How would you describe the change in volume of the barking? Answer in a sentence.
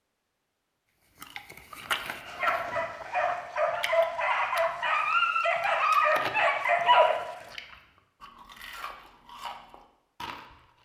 The loudness of the barking goes up.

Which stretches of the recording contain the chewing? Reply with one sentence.
The chewing can be heard from 1.2 to 4.7 s and from 5.8 to 10.8 s.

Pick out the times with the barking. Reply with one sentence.
You can hear the barking from 2.2 to 7.5 s.